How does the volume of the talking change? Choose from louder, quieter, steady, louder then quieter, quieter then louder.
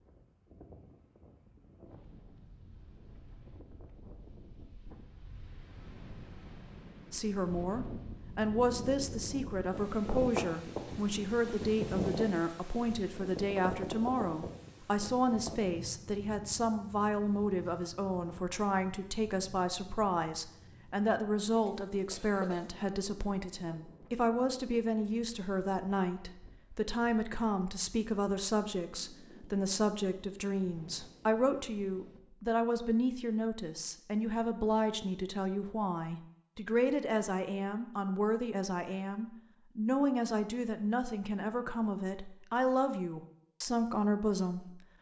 steady.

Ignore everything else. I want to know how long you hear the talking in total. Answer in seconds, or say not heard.
38 s.